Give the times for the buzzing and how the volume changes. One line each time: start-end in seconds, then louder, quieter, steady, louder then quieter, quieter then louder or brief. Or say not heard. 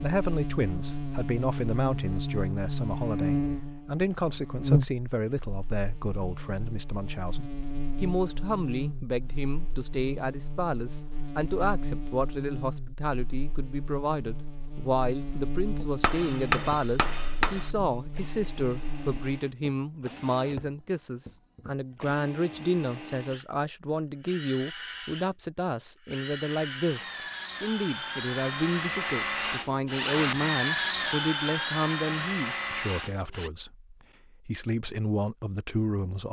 0.0-19.4 quieter.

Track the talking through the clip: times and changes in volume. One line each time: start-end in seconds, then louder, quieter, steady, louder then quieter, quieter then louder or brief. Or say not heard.
0.0-36.2 steady.